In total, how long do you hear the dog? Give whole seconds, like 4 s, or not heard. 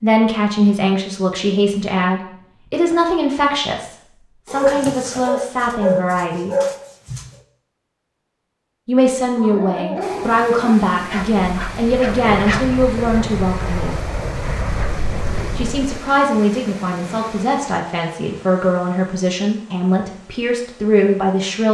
6 s.